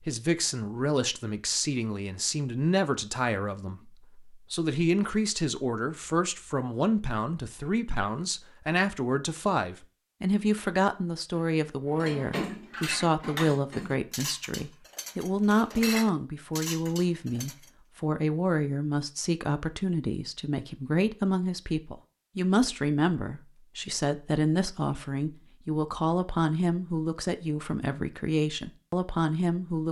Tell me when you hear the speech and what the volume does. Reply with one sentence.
You can hear the speech from 0.0 to 29.8 s, at a steady volume.